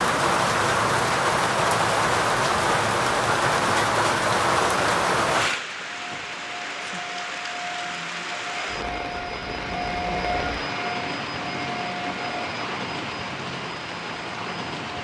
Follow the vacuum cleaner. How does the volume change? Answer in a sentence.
The loudness of the vacuum cleaner goes up, then down.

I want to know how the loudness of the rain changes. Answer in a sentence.
The loudness of the rain goes down.